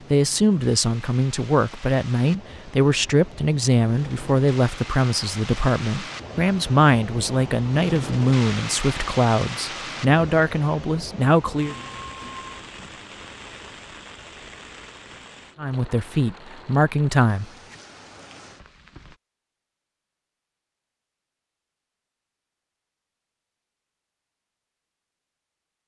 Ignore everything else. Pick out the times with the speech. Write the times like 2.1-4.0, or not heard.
0.1-11.8, 15.6-17.4.